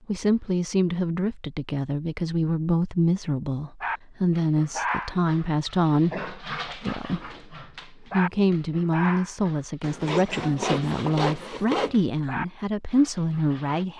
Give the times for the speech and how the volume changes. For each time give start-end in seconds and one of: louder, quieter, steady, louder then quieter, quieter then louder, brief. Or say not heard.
0.1-13.9 steady.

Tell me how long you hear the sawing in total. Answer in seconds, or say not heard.
2 s.